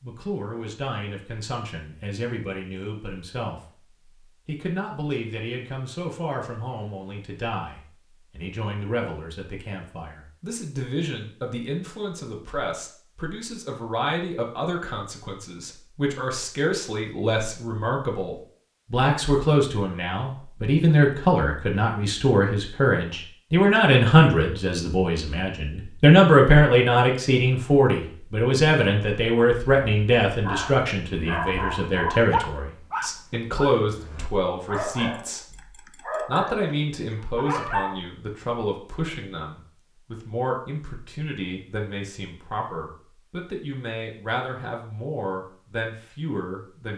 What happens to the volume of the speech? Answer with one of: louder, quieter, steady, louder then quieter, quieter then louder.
louder then quieter.